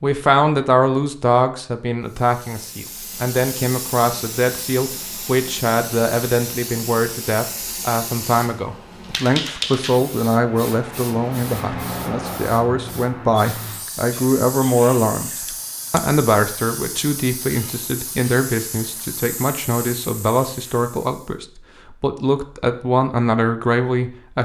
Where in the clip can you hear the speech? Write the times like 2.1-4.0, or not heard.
0.0-15.3, 15.9-24.4.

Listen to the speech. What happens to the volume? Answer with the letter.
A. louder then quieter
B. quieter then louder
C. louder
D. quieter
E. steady
E.